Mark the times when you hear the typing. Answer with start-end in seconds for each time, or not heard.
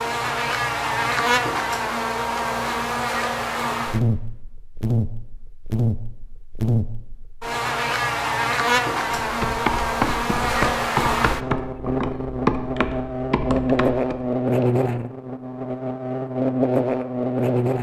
9.1-14.7.